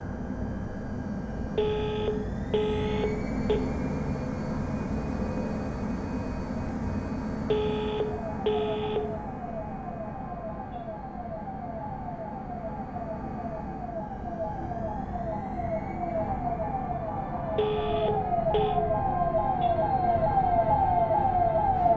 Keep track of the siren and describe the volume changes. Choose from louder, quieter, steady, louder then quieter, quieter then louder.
louder.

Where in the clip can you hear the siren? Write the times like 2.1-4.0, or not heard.
8.2-21.9.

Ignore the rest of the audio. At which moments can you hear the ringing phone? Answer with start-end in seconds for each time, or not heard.
1.6-3.6, 7.5-9.0, 17.6-18.8.